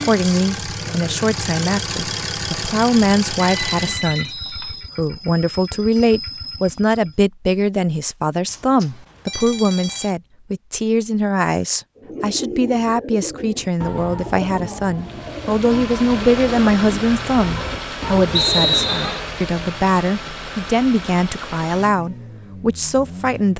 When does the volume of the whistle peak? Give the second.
19 s.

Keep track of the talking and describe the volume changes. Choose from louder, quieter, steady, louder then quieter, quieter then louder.
steady.